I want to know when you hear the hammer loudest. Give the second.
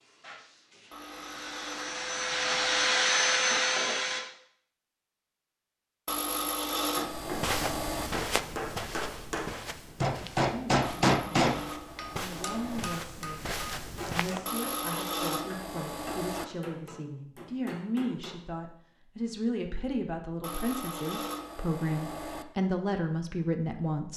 11 s.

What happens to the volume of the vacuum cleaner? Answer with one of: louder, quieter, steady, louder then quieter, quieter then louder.
louder.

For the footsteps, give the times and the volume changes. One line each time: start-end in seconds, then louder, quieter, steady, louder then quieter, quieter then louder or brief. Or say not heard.
7.0-14.4 quieter then louder.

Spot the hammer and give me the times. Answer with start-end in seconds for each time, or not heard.
7.0-18.4.